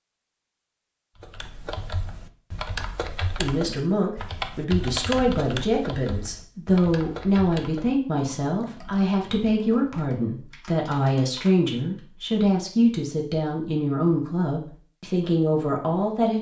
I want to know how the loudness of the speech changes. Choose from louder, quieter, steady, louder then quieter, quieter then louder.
steady.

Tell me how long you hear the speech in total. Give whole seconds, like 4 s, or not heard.
13 s.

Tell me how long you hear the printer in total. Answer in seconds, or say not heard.
not heard.